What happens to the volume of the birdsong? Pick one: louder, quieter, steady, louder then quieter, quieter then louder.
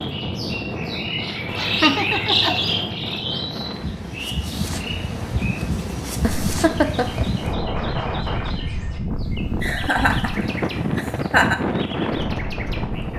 quieter.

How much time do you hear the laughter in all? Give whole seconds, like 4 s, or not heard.
4 s.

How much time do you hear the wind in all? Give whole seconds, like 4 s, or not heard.
13 s.